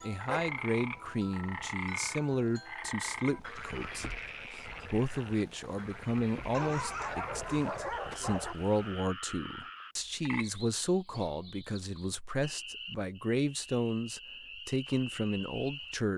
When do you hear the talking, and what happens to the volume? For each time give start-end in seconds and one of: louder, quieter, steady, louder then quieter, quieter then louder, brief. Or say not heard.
0.0-16.1 steady.